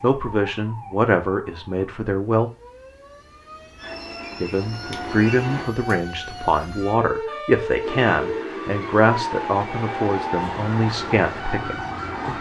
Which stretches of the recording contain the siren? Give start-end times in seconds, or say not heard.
0.0-12.3.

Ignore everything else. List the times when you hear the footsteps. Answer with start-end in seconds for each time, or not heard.
not heard.